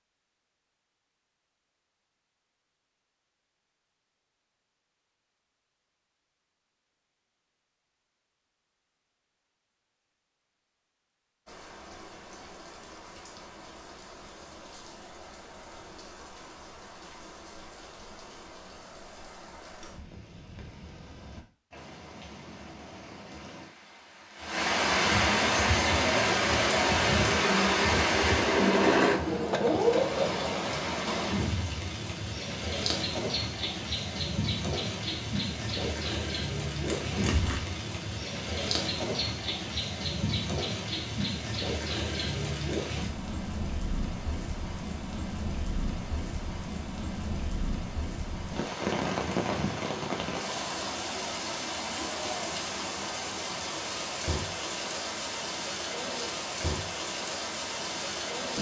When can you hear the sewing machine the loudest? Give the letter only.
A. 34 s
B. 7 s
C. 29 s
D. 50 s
C.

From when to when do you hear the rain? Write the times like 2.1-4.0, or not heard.
11.4-58.5.